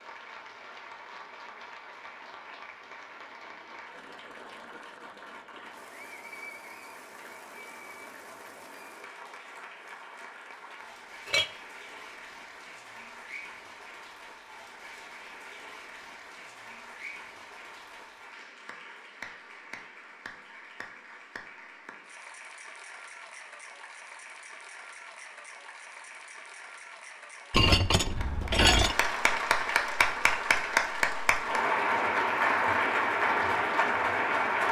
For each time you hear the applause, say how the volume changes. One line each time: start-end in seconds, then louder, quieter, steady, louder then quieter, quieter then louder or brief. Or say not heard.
0.0-34.6 louder.